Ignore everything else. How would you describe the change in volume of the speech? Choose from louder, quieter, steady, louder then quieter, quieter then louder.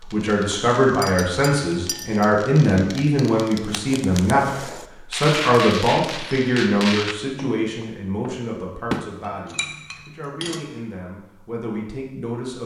quieter.